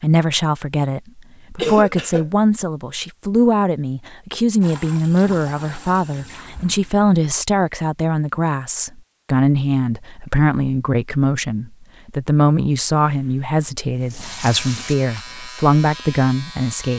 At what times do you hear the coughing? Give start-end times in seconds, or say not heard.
1.6-2.2.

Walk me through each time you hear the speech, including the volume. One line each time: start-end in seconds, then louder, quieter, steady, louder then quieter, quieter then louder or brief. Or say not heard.
0.0-16.9 steady.